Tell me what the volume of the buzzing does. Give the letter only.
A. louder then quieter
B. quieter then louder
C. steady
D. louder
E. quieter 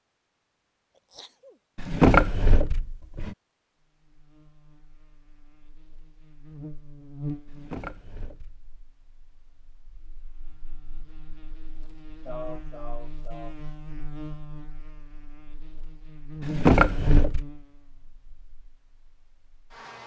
B.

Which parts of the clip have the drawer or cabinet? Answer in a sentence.
You can hear the drawer or cabinet from 1.8 to 3.4 s, from 7.5 to 8.7 s and from 16.4 to 17.4 s.